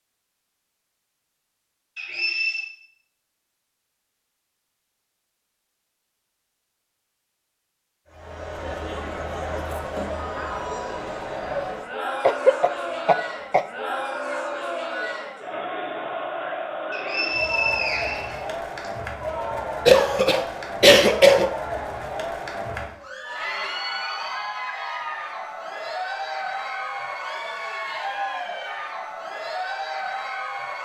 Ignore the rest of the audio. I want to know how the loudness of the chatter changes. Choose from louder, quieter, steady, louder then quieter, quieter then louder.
steady.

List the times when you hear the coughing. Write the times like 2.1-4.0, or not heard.
12.2-13.7, 19.9-21.5.